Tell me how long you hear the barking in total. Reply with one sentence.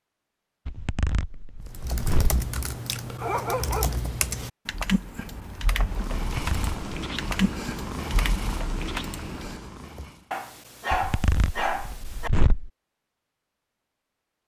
The barking can be heard for 3 seconds in total.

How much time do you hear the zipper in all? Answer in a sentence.
You can hear the zipper for 4 seconds altogether.